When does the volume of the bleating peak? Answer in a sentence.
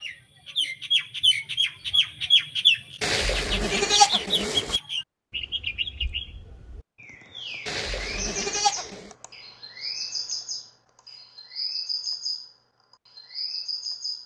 The loudest moment of the bleating is at 4 seconds.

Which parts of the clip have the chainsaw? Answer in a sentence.
You can't hear the chainsaw here.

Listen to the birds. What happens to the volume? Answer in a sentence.
The loudness of the birds goes down.